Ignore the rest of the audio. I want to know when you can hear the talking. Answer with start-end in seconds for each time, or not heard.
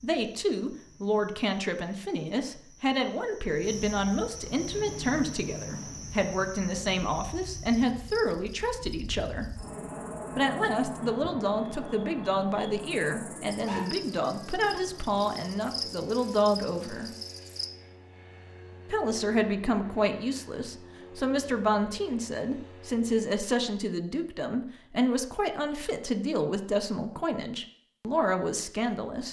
0.0-9.5, 10.3-17.1, 18.9-29.2.